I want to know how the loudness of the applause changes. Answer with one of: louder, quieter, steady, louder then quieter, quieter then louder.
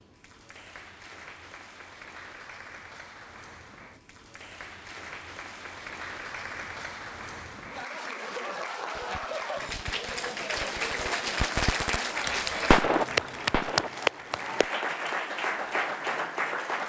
louder.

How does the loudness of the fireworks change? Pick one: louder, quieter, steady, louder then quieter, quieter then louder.
louder.